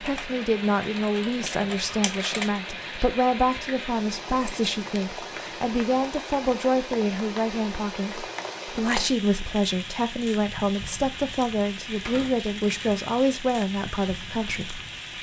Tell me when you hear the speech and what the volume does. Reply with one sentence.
The speech can be heard from 0.0 to 15.1 s, at a steady volume.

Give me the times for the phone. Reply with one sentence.
The phone can't be heard in this clip.